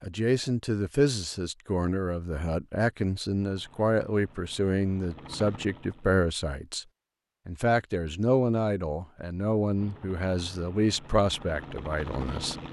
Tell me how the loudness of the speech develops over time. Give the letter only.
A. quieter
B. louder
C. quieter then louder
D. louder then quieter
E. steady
E.